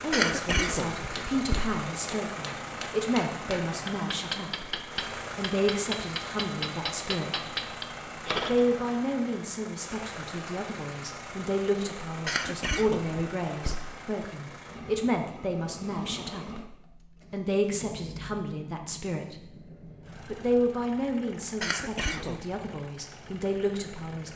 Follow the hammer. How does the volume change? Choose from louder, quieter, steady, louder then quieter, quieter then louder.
louder.